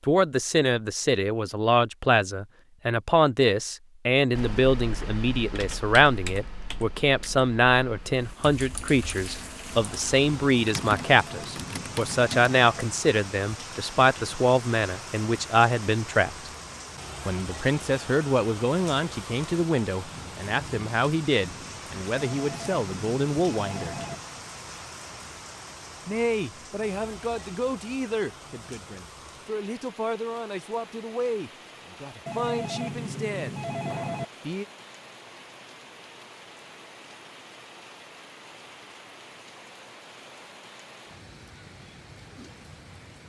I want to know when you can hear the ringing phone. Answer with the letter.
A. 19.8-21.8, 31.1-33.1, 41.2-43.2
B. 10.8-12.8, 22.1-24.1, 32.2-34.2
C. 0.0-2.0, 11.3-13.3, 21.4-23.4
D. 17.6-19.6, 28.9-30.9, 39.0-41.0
B.